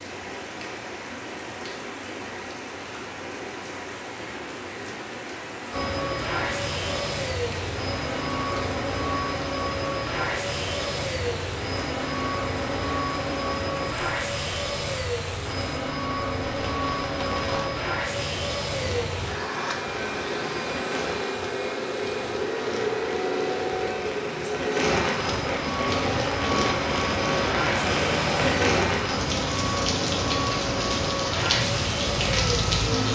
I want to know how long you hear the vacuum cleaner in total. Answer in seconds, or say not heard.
27 s.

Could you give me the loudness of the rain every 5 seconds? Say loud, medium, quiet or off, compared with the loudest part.
medium, medium, medium, medium, medium, loud, loud.